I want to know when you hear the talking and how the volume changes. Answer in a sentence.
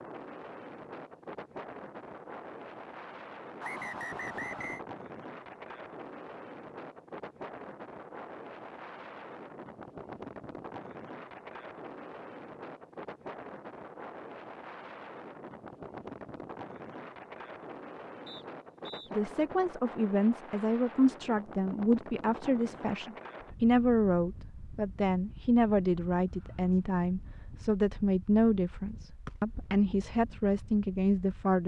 You can hear the talking from 19.1 to 31.6 s, at a steady volume.